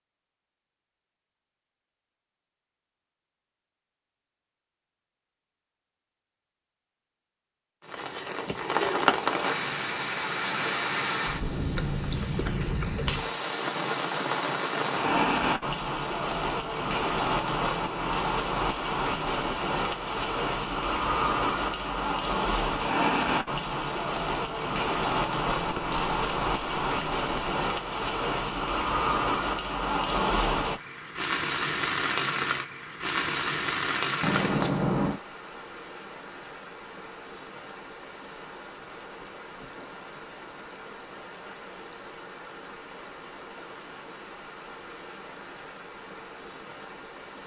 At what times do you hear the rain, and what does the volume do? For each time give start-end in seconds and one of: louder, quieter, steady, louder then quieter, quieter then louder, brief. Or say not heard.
7.8-47.4 quieter.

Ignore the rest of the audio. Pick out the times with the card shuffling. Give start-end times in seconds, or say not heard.
12.8-13.3, 25.4-27.5, 34.2-35.2.